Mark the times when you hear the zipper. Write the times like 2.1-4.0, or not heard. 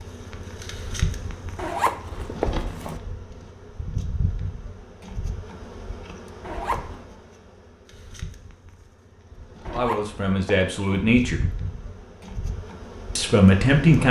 1.6-3.0, 6.4-7.0, 9.7-11.1.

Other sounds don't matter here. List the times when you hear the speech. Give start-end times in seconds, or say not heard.
9.7-11.4, 13.2-14.0.